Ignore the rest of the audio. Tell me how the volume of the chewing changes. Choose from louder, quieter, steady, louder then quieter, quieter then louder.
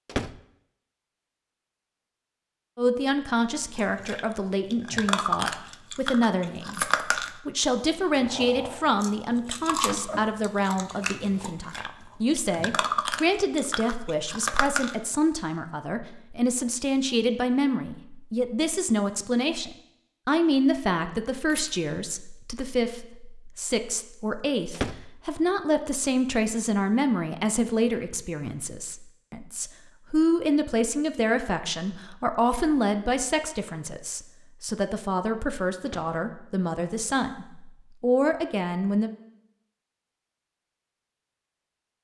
quieter then louder.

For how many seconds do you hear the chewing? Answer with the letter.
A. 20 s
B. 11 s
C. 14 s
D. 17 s
B.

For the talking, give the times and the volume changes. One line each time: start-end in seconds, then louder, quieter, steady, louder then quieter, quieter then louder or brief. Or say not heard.
2.8-39.1 steady.